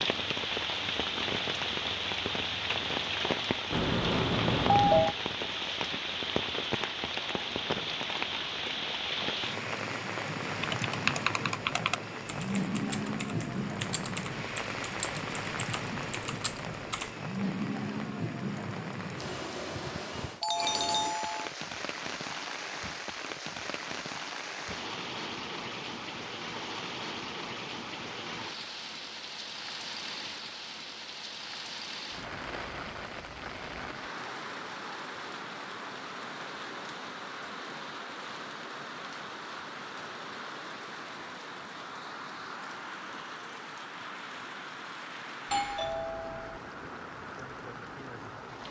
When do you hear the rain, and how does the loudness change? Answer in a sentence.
The rain can be heard from 0.0 to 48.6 s, getting quieter.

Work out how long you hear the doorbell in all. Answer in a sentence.
The doorbell can be heard for 4 seconds in total.